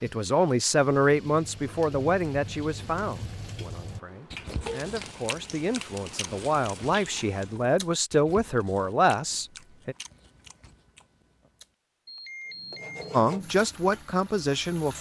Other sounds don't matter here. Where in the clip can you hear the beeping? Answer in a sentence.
The beeping can be heard from 12.1 to 13.2 s.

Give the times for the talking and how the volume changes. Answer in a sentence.
You can hear the talking from 0.0 to 9.9 s, getting quieter then louder; and briefly from 13.1 to 14.9 s.